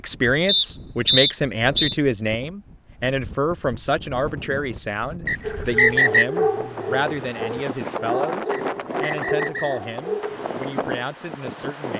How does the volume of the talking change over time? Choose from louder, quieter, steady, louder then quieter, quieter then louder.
quieter.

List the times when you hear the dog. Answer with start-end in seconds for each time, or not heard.
5.4-10.4.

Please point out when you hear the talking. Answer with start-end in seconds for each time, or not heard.
0.0-11.9.